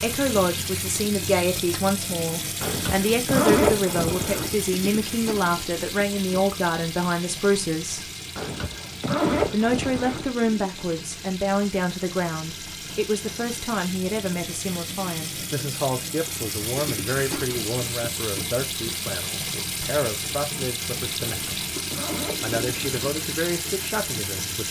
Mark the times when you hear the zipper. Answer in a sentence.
The zipper can be heard from 2.6 to 4.5 s, from 8.3 to 10.3 s and from 21.2 to 22.9 s.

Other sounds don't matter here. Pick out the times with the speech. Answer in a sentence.
You can hear the speech from 0.0 to 8.1 s, from 9.5 to 21.6 s and from 22.4 to 24.6 s.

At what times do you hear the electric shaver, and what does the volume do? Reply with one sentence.
You can't hear the electric shaver here.